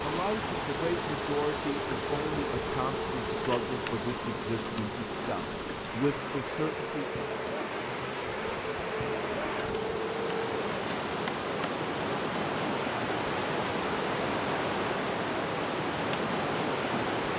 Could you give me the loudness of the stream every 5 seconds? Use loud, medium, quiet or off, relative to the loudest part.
medium, medium, loud, loud.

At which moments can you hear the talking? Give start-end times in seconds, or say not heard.
0.0-7.0.